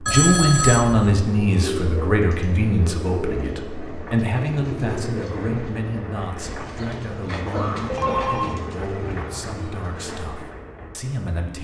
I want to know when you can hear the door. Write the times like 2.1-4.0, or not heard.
not heard.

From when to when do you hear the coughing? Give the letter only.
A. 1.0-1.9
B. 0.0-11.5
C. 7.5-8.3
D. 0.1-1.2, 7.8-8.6
C.